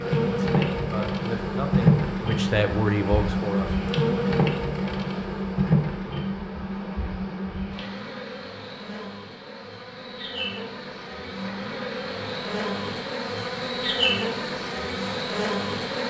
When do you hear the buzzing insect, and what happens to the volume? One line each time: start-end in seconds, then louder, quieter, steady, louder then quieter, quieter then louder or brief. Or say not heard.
0.0-16.0 quieter then louder.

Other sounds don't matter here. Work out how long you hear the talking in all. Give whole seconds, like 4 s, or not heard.
4 s.